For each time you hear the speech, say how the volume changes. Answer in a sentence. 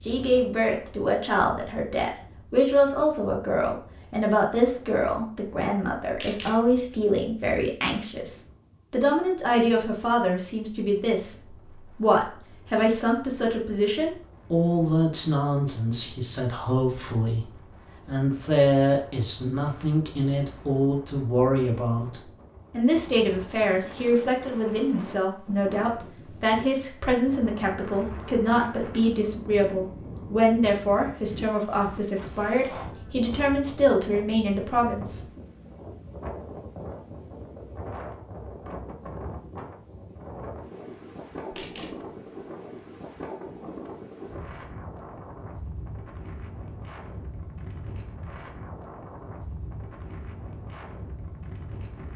You can hear the speech from 0.0 to 17.4 s, at a steady volume; and from 18.1 to 35.2 s, at a steady volume.